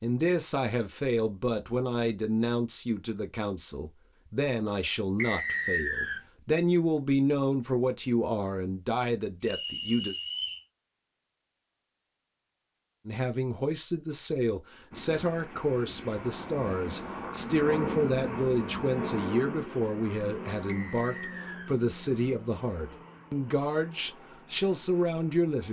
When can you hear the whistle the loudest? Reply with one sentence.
The volume of the whistle peaks at 6 seconds.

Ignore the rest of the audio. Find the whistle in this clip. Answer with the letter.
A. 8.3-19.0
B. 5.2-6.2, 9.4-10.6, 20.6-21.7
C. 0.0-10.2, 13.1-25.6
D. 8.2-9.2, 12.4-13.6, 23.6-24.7
B.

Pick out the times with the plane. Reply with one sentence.
You can hear the plane from 14.9 to 25.6 s.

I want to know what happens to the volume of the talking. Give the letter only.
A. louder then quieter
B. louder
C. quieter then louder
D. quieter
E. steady
E.